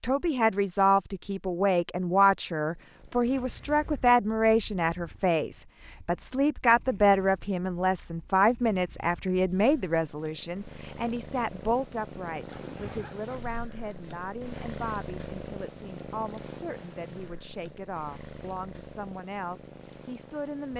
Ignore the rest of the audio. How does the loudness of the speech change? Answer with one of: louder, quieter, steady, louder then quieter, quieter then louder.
quieter.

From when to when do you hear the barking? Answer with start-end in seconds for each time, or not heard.
not heard.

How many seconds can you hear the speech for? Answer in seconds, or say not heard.
21 s.